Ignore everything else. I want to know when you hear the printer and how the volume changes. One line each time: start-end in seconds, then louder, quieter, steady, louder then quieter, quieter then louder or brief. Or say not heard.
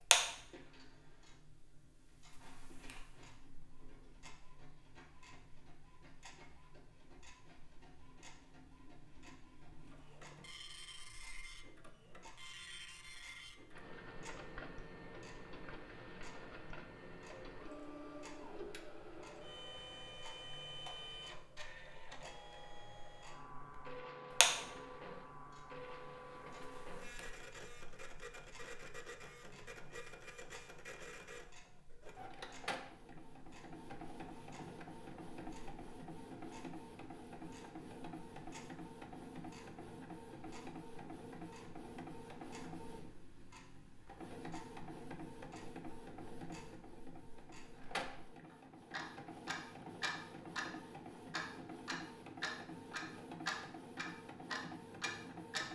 0.1-55.7 louder.